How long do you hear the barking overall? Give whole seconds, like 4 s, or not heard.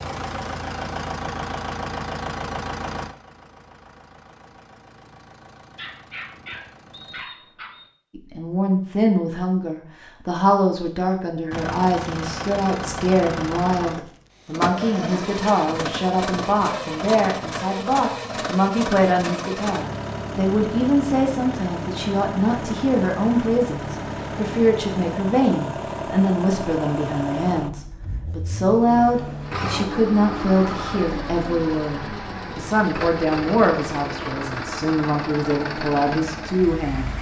2 s.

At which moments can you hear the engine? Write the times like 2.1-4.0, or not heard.
0.0-7.2, 11.5-37.1.